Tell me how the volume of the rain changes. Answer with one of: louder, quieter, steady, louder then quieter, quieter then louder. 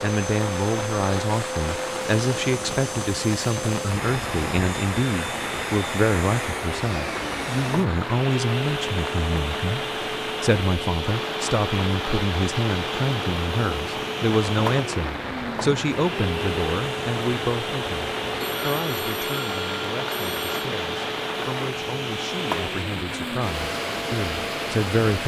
steady.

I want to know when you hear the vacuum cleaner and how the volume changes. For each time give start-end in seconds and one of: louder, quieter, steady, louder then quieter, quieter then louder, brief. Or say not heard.
0.0-25.2 steady.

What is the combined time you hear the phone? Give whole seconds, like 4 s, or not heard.
2 s.